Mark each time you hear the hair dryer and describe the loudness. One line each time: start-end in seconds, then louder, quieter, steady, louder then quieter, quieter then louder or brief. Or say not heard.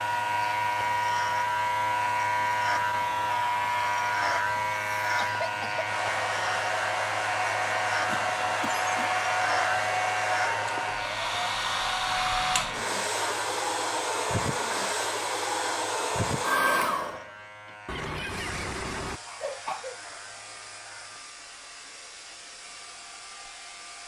0.0-24.0 quieter.